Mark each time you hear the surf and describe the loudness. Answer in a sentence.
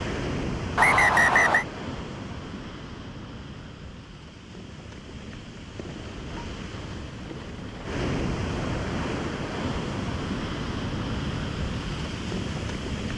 The surf can be heard from 0.0 to 13.1 s, getting quieter then louder.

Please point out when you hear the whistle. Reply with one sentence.
The whistle can be heard from 0.8 to 1.6 s.